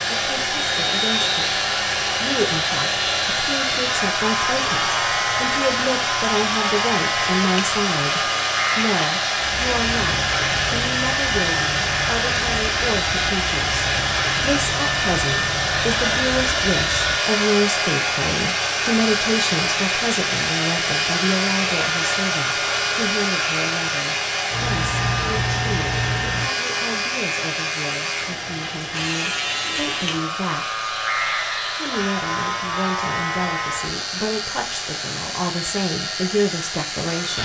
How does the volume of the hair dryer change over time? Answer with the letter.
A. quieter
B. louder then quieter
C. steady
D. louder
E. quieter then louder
A.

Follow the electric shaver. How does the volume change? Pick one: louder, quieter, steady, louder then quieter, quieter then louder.
steady.